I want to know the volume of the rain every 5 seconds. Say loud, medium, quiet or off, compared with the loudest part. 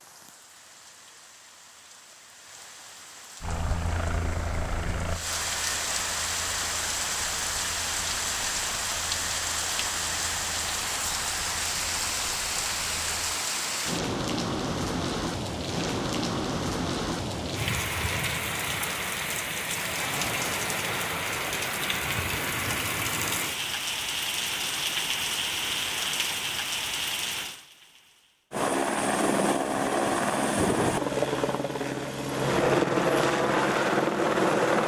quiet, loud, loud, loud, loud, loud, off.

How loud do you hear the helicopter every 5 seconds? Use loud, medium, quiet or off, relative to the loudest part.
medium, quiet, quiet, off, off, loud, loud.